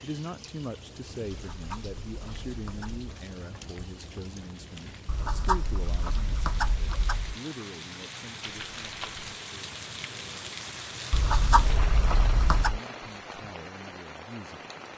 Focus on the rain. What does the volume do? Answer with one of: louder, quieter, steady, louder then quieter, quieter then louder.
louder.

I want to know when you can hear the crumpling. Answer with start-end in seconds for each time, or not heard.
4.5-5.2, 8.4-9.4.